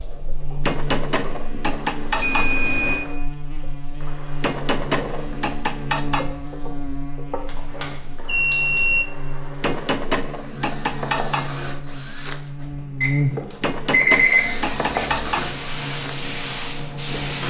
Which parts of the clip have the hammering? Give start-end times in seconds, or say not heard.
0.6-2.5, 4.4-6.3, 9.6-11.5, 13.6-15.5.